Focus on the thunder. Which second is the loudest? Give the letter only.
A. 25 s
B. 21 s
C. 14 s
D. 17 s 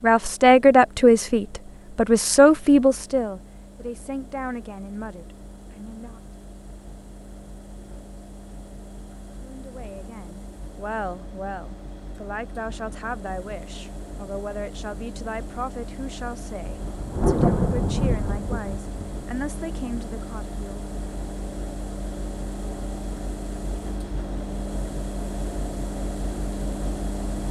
D.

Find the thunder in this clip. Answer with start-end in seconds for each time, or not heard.
16.6-19.2.